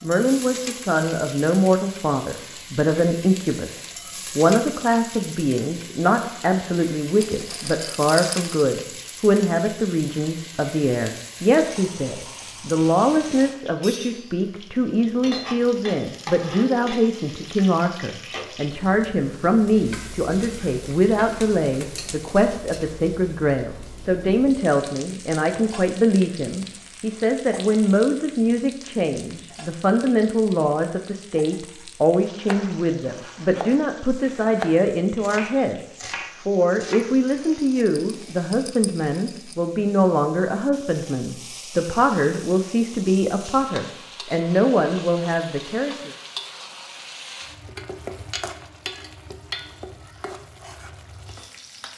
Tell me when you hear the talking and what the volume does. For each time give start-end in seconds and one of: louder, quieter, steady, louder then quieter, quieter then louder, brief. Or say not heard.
0.0-46.1 steady.